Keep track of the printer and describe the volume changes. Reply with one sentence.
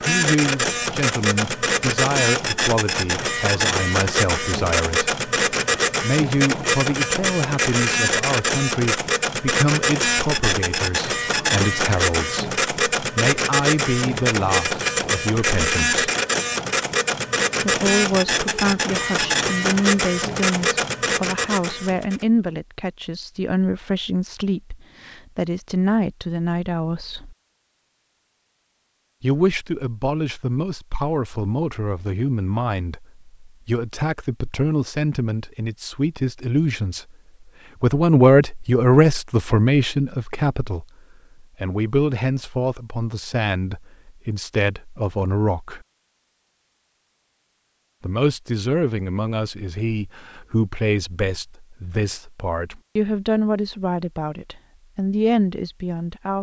The volume of the printer stays about the same.